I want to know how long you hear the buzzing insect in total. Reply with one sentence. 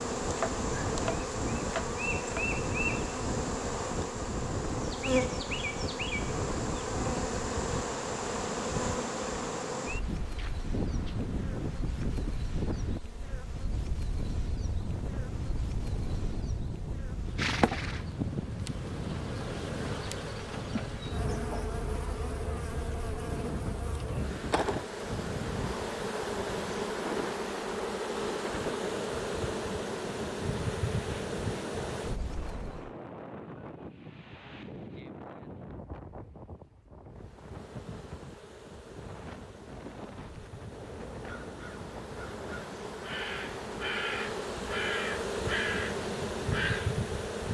You can hear the buzzing insect for 43 seconds altogether.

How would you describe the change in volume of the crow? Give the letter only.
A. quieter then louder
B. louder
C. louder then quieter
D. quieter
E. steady
B.